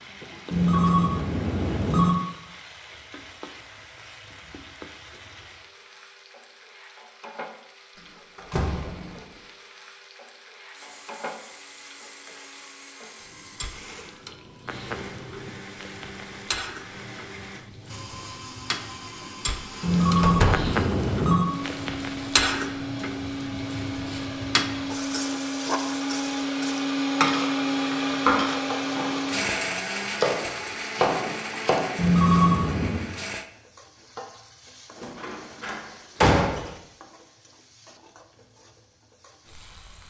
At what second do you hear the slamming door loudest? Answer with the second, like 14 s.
36 s.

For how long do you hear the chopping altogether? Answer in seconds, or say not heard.
4 s.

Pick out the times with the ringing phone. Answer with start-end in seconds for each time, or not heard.
0.5-2.1, 19.8-21.5, 31.9-33.1.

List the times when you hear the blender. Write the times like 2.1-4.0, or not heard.
10.7-33.5.